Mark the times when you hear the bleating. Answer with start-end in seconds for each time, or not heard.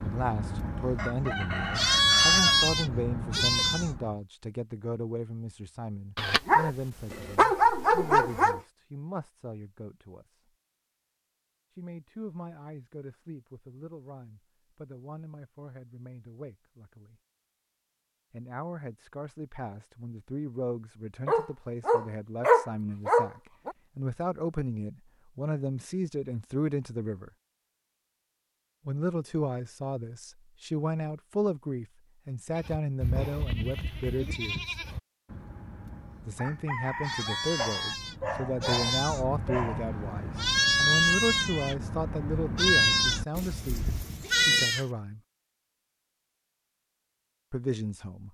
0.0-4.2, 32.5-44.9.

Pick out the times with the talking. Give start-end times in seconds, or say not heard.
0.0-10.4, 11.7-17.1, 18.3-27.3, 28.9-34.8, 36.2-45.2, 47.5-48.2.